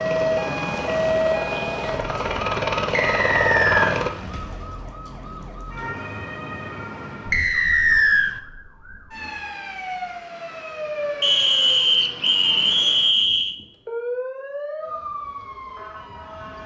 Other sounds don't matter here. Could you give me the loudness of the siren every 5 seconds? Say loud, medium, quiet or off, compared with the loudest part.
loud, medium, medium, medium.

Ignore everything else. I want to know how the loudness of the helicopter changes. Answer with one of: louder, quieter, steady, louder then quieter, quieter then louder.
louder.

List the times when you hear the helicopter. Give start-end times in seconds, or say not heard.
0.0-4.1.